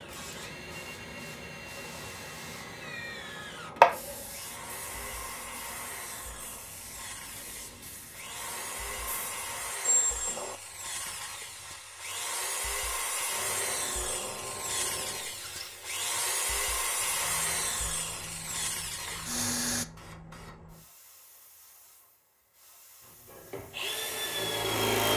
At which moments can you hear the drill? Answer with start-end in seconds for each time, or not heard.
0.0-19.9, 23.2-25.1.